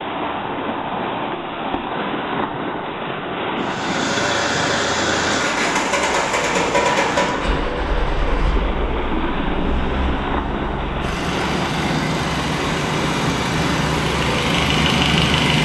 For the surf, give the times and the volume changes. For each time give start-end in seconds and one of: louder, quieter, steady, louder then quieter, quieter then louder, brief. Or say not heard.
0.0-15.6 steady.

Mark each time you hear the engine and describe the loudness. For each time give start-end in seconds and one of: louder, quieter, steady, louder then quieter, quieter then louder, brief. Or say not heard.
3.6-15.6 quieter then louder.